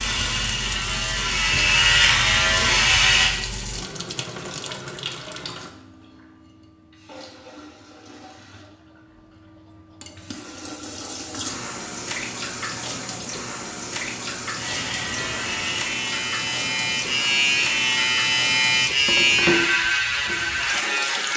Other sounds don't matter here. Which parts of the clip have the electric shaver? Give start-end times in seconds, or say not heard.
0.0-3.4, 14.6-21.3.